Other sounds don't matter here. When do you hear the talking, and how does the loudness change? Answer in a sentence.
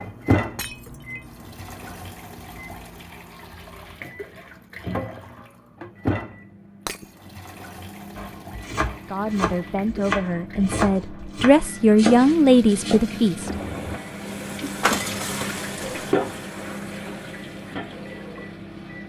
The talking can be heard from 9.1 to 13.5 s, getting louder.